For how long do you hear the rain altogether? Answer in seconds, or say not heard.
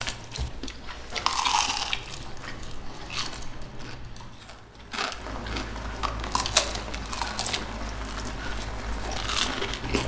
10 s.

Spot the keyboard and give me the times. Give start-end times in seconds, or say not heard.
1.9-4.3.